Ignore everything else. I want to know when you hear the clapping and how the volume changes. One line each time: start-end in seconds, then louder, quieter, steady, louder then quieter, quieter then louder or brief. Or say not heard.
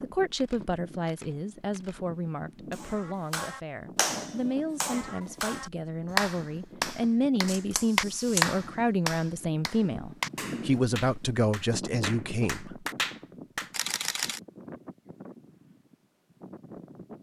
2.7-13.7 louder then quieter.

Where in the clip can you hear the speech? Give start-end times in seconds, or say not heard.
0.0-12.8.